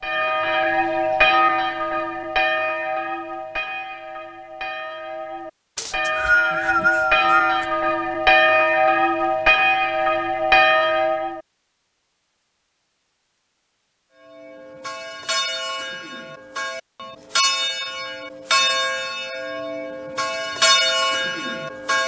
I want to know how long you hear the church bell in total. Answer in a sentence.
You can hear the church bell for 19 seconds altogether.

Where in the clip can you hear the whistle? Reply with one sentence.
The whistle can be heard from 5.8 to 7.7 s.